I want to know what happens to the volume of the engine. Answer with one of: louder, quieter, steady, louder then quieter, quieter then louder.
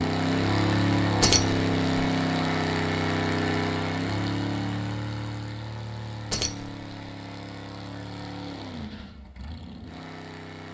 quieter.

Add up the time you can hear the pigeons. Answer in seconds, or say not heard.
not heard.